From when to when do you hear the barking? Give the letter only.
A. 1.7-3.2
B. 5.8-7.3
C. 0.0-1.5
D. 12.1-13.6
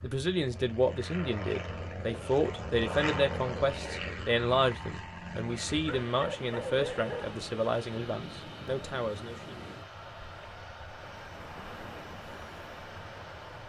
B.